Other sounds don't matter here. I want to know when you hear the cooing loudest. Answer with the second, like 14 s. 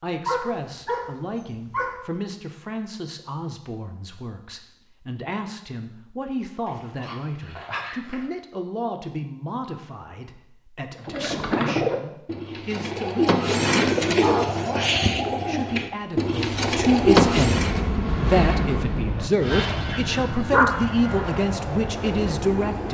17 s.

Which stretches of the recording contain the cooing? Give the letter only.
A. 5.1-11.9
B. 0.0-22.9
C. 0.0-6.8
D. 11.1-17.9
D.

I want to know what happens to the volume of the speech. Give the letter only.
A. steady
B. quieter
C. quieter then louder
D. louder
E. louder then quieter
D.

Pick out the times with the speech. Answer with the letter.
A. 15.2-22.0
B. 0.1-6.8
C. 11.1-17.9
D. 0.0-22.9
D.